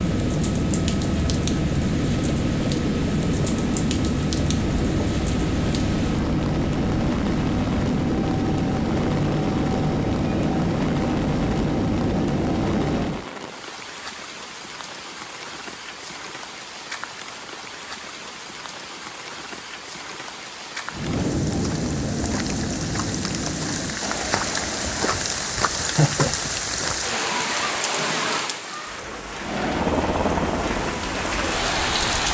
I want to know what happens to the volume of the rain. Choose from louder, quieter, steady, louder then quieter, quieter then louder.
louder.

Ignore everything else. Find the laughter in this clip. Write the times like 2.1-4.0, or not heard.
25.8-26.9.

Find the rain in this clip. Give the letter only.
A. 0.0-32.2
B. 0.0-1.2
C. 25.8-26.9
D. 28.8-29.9
A.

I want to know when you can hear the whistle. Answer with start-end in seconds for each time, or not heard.
not heard.